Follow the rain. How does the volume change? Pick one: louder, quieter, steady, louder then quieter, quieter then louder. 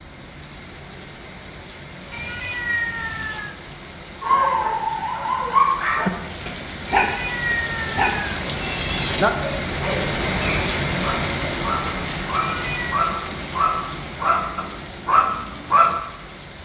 louder then quieter.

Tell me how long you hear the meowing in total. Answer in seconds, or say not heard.
4 s.